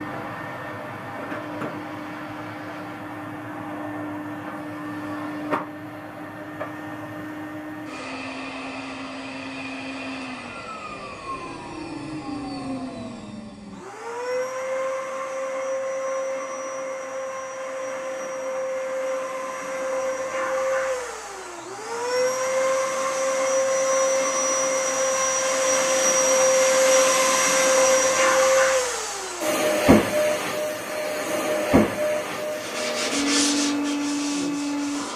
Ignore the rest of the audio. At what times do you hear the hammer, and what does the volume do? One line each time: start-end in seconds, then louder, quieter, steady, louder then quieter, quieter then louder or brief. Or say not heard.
not heard.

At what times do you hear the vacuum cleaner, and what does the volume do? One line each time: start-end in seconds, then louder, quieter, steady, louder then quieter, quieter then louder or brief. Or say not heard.
0.0-35.1 louder.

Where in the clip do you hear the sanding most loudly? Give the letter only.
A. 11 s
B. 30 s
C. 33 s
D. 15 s
C.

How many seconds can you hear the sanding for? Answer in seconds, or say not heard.
3 s.